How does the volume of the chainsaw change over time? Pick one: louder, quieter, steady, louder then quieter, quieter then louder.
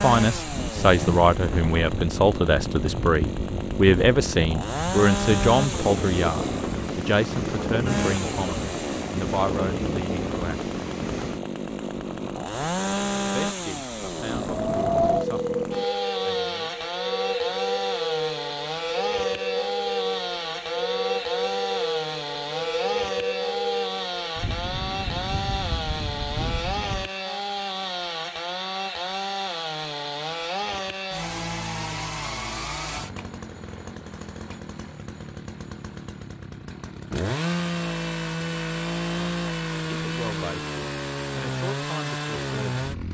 steady.